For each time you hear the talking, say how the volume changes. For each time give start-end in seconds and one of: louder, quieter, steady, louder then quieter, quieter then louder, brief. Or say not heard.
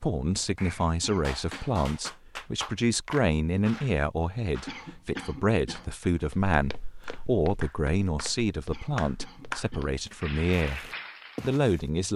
0.0-12.1 steady.